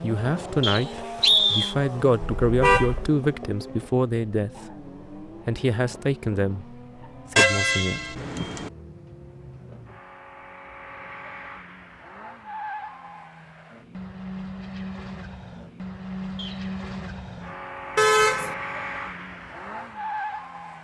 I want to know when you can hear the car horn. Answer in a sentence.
You can hear the car horn from 2.4 to 3.1 s, from 7.3 to 8.7 s and from 17.9 to 18.6 s.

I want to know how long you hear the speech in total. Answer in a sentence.
You can hear the speech for 8 seconds altogether.